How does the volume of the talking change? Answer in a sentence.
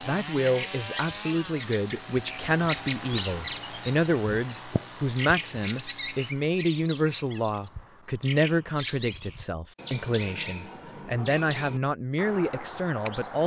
The loudness of the talking stays about the same.